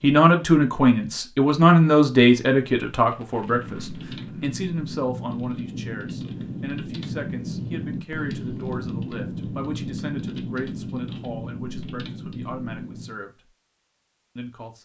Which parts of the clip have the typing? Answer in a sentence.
You can hear the typing from 3.4 to 13.2 s.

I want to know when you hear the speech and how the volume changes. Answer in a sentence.
The speech can be heard from 0.0 to 13.5 s, getting quieter; and briefly from 14.3 to 14.8 s.